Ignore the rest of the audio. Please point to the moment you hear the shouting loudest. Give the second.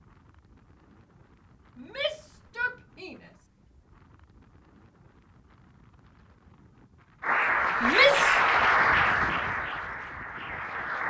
8 s.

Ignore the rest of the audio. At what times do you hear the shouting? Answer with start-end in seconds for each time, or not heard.
1.8-3.3, 7.8-8.4.